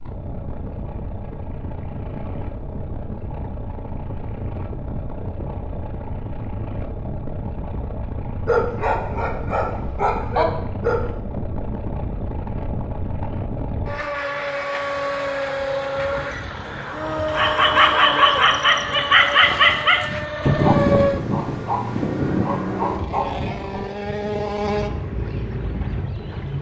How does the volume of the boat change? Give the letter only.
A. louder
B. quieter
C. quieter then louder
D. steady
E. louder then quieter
A.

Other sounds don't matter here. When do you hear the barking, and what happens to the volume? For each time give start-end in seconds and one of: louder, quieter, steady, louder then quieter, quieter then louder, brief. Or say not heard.
8.4-11.0 brief
17.2-23.9 quieter.